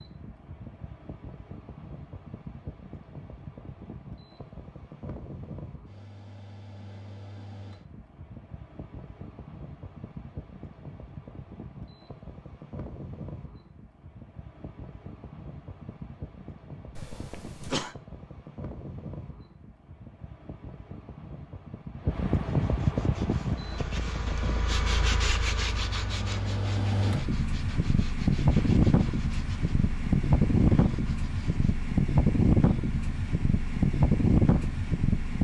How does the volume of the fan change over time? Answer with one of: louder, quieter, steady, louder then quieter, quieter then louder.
louder.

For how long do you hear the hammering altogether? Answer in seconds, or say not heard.
not heard.